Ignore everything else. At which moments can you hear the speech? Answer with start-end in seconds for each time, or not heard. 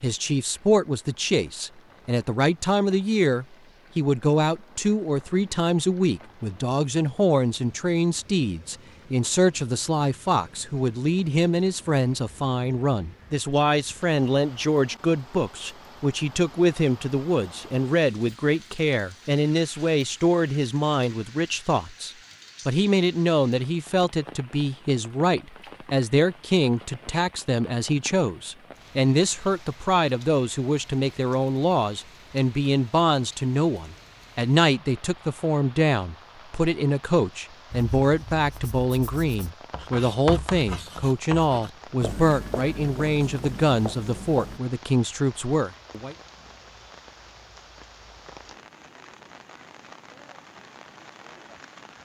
0.0-46.1.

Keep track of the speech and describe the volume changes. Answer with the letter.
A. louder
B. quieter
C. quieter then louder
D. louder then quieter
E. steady
E.